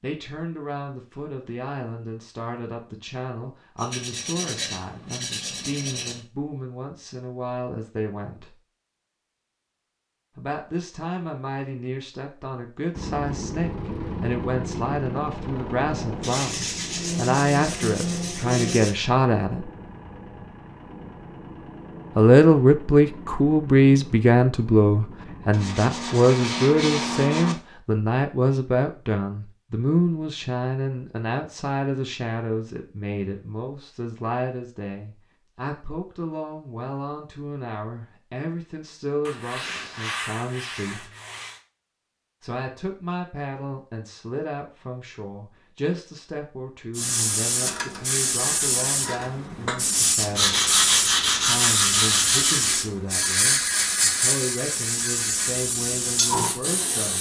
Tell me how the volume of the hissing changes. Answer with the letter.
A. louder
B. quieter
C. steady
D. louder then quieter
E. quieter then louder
C.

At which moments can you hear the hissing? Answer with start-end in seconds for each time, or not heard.
47.0-57.1.